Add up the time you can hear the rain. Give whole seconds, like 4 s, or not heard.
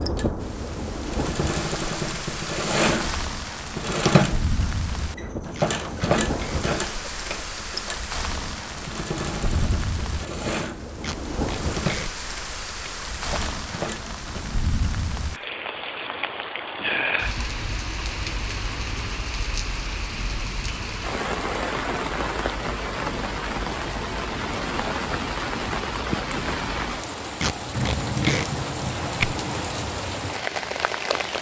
31 s.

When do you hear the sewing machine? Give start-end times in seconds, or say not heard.
0.0-14.4.